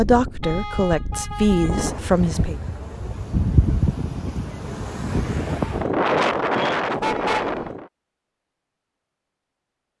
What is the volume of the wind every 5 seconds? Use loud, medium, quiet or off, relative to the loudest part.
medium, loud.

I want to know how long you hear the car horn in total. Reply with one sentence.
You can hear the car horn for 2 seconds altogether.